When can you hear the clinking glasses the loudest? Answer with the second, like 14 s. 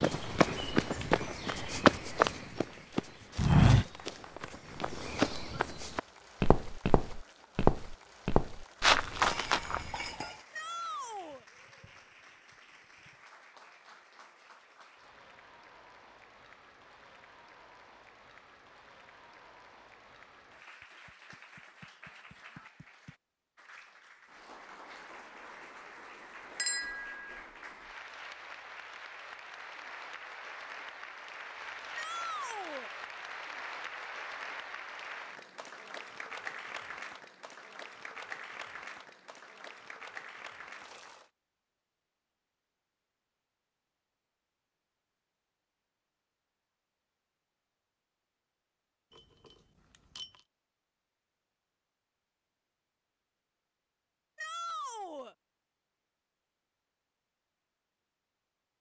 27 s.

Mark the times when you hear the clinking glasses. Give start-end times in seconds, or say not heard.
9.2-10.4, 26.6-27.4, 49.1-50.5.